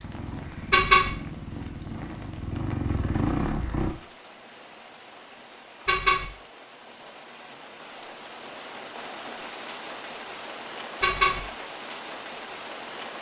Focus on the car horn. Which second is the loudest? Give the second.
1 s.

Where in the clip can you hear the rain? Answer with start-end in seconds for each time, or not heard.
0.0-13.1.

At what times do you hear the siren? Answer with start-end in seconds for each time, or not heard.
not heard.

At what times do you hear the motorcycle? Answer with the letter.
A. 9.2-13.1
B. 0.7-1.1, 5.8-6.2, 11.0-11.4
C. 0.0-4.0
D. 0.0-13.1
C.